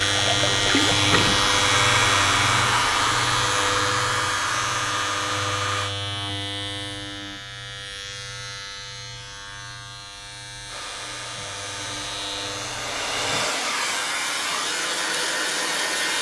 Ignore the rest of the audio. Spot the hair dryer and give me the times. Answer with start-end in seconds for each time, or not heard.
0.0-6.0, 10.7-16.1.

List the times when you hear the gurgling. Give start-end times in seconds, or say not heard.
0.1-1.6.